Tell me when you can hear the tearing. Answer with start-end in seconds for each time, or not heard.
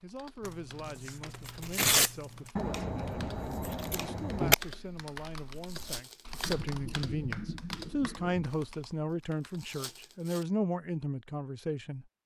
0.5-2.5, 5.5-6.5, 9.4-10.4.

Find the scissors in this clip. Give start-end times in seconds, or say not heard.
2.5-4.5, 6.4-8.4.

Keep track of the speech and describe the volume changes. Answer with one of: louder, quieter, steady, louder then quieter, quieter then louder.
louder.